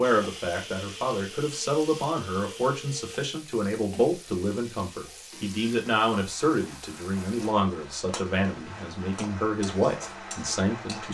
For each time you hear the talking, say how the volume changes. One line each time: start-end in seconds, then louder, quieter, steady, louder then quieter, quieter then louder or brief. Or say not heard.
0.0-11.0 steady.